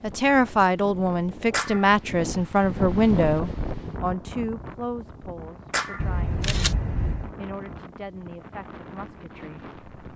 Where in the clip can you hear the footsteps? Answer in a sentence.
The footsteps can't be heard in this clip.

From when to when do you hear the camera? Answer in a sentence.
The camera can be heard from 6.0 to 7.3 s.